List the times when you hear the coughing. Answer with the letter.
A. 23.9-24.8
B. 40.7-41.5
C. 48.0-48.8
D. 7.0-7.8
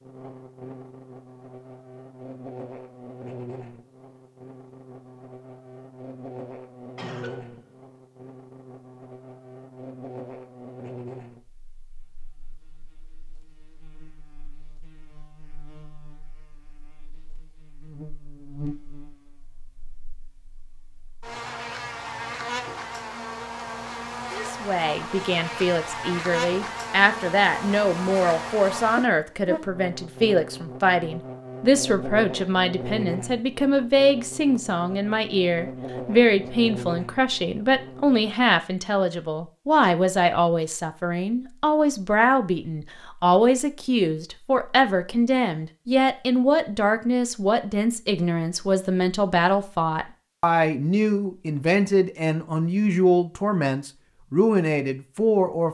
D.